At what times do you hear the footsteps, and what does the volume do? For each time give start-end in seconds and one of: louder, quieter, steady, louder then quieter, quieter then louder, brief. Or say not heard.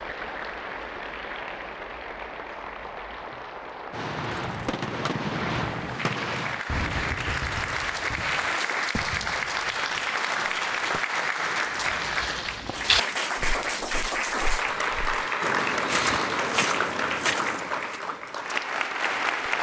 11.8-18.0 quieter then louder.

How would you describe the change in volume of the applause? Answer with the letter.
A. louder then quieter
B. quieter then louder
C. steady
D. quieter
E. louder
E.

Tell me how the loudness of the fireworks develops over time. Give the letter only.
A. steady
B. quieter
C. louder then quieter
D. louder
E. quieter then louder
B.